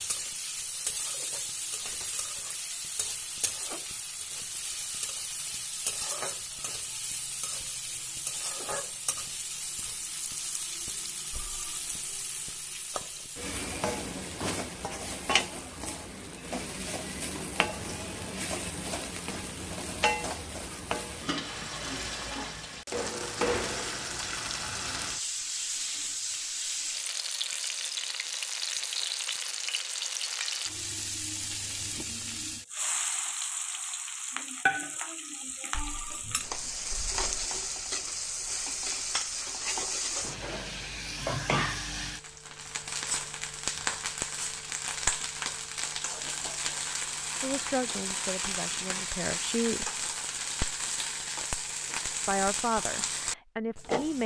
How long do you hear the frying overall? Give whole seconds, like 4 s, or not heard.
54 s.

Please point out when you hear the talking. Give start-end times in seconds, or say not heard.
47.4-50.0, 52.2-54.2.